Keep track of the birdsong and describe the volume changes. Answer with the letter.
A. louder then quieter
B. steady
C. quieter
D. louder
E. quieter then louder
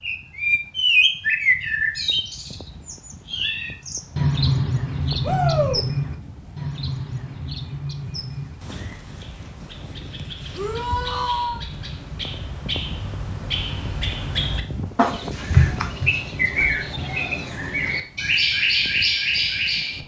E.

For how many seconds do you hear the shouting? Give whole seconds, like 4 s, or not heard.
2 s.